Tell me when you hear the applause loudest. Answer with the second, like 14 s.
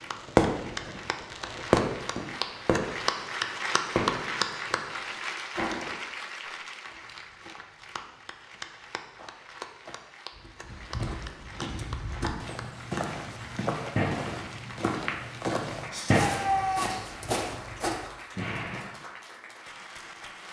4 s.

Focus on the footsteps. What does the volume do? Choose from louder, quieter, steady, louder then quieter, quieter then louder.
louder.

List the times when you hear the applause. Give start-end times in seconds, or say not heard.
0.0-20.4.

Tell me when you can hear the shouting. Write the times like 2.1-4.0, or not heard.
15.9-17.1.